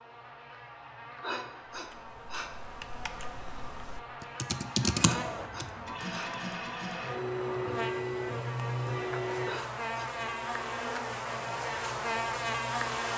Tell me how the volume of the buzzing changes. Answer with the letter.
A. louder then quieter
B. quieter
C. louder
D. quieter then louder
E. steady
C.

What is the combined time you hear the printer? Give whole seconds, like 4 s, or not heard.
8 s.